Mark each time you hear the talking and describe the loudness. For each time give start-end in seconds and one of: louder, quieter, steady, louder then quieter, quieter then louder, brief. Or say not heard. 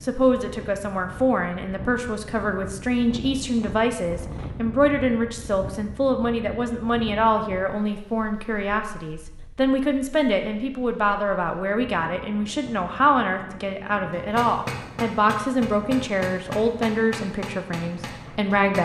0.0-18.8 steady.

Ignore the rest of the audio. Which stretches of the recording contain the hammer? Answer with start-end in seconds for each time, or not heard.
14.1-18.8.